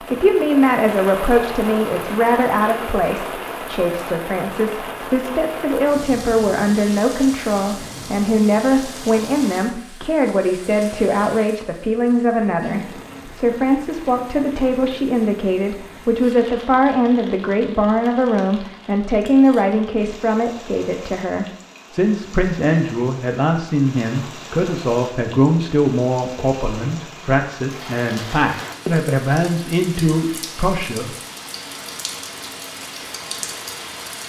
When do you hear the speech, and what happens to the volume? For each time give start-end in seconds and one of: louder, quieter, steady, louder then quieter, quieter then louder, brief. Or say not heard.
0.0-31.1 steady.